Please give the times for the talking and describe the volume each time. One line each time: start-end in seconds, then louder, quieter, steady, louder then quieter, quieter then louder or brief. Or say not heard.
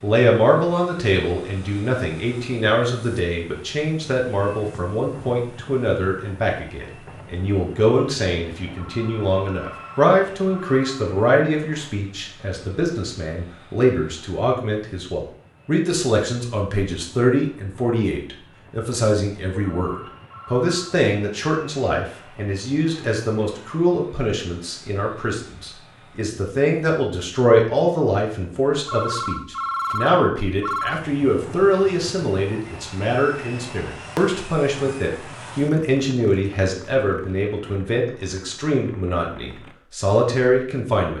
0.0-41.1 steady.